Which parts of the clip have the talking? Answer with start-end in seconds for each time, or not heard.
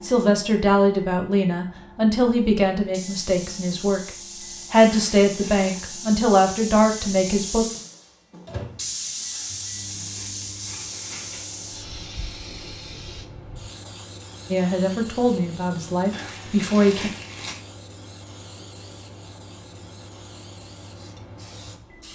0.0-4.1, 4.7-7.7, 14.5-17.1.